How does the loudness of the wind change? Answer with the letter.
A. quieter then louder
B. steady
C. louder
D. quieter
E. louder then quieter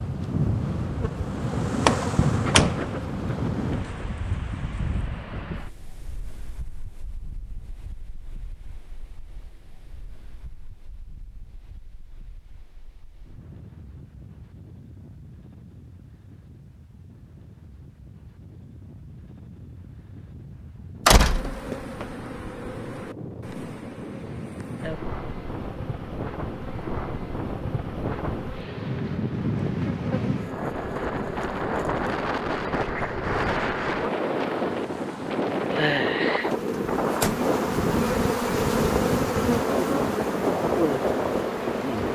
A.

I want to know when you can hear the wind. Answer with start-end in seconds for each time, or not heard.
0.0-42.1.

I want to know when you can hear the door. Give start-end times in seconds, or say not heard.
1.9-2.9, 21.1-22.1, 36.5-37.5.